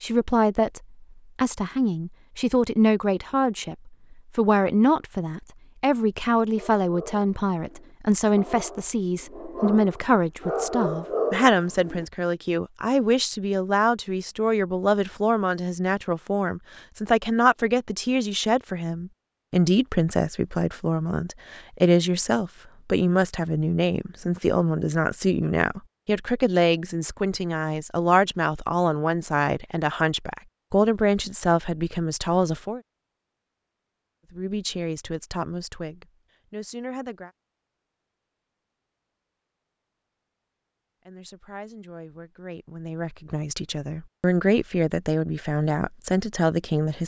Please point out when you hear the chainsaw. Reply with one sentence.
The chainsaw can't be heard in this clip.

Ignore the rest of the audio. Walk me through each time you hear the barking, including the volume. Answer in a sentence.
The barking can be heard from 6.5 to 12.1 s, getting louder.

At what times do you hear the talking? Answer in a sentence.
The talking can be heard from 0.0 to 32.8 s, from 34.3 to 37.3 s and from 41.0 to 47.0 s.